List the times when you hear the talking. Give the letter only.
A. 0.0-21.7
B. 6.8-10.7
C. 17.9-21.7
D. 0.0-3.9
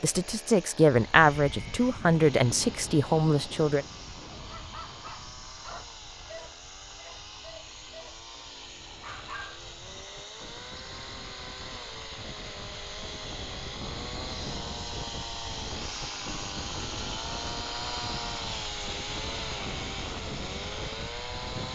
D.